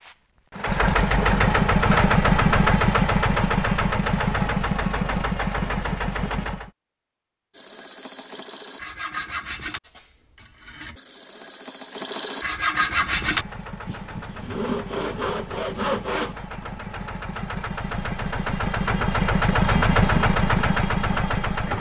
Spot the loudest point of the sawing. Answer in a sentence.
The loudest moment of the sawing is at 13 seconds.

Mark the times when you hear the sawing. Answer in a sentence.
You can hear the sawing from 7.5 to 16.4 s.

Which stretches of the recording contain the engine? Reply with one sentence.
The engine can be heard from 0.0 to 6.7 s and from 12.8 to 21.7 s.